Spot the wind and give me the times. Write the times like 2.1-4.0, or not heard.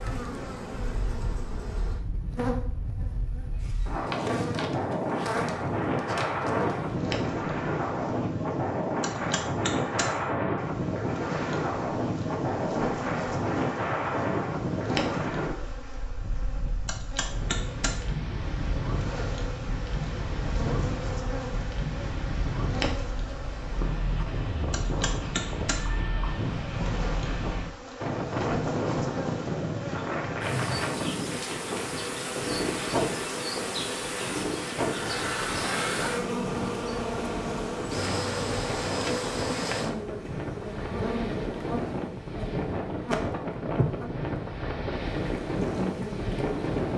0.0-46.9.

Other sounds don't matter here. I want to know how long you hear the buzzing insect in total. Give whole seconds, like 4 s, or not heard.
47 s.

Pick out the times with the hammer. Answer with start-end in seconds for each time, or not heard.
not heard.